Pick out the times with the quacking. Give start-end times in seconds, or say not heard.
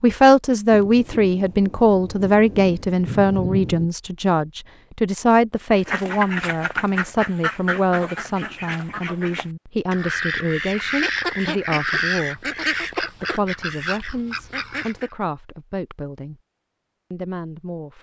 5.7-15.1.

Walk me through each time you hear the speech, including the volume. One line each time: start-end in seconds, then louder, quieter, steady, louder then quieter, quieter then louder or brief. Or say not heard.
0.0-16.4 quieter
17.1-17.9 brief.